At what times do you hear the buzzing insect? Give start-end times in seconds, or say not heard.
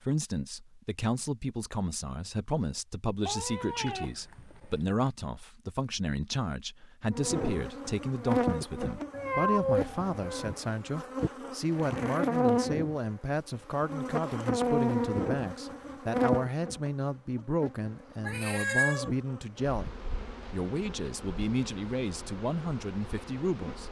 7.1-23.8.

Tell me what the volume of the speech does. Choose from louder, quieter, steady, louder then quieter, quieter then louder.
steady.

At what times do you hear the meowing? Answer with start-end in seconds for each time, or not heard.
3.2-4.9, 9.1-10.6, 18.2-19.1.